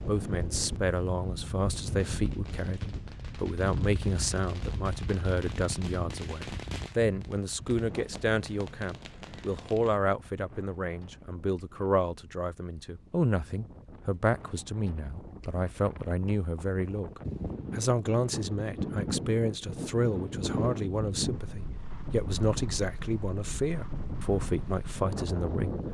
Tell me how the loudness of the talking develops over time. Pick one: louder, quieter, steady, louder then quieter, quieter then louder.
steady.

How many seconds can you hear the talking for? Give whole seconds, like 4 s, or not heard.
26 s.